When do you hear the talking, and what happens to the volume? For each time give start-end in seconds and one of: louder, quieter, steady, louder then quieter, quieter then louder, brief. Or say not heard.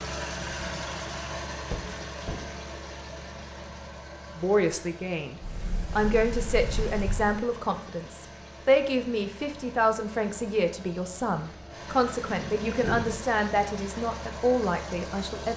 4.3-15.5 steady.